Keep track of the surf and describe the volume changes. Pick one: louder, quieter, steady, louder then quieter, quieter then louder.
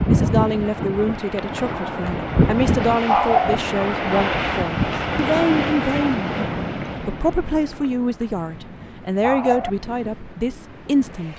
quieter.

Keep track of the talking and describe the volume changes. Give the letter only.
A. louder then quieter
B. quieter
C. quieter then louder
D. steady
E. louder
D.